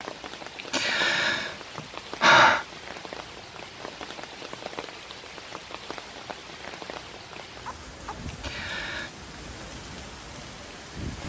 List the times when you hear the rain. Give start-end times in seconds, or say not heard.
0.0-11.2.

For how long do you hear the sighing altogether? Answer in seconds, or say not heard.
3 s.